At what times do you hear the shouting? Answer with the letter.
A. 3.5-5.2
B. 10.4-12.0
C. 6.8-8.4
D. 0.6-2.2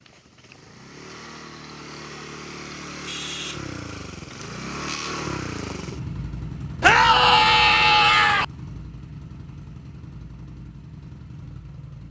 C.